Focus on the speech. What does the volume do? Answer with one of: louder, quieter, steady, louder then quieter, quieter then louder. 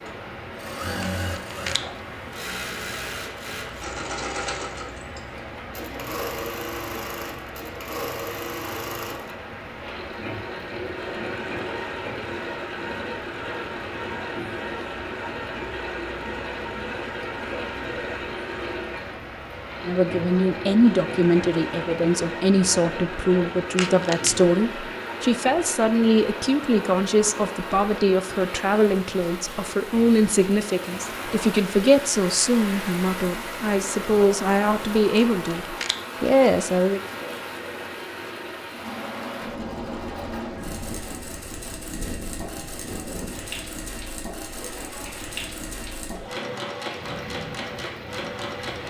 steady.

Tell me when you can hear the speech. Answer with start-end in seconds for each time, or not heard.
19.9-37.0.